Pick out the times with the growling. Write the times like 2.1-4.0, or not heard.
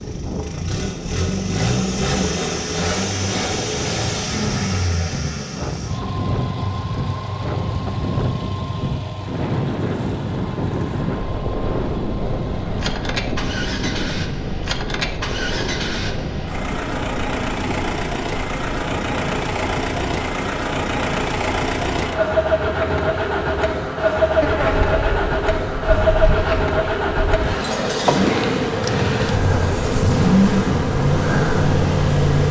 not heard.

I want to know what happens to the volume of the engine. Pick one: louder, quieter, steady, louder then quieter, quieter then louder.
quieter then louder.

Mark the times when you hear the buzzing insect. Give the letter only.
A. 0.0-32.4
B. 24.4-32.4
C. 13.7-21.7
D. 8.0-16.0
B.